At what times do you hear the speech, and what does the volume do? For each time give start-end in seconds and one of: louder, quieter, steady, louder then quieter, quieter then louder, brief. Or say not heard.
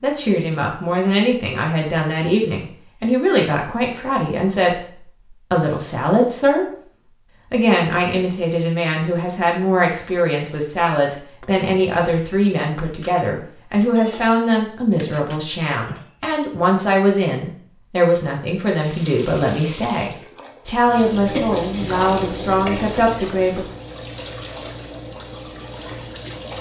0.0-6.7 steady
7.5-23.6 steady.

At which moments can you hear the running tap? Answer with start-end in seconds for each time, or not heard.
18.7-26.5.